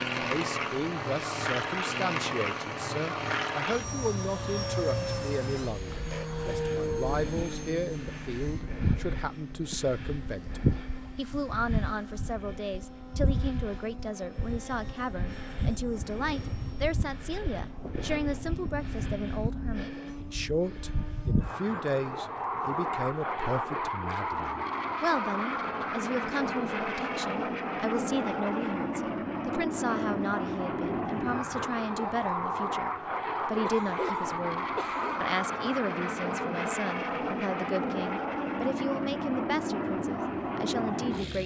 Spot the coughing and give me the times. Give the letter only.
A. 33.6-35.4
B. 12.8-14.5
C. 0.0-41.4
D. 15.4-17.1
A.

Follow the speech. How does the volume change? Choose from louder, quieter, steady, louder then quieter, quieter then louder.
steady.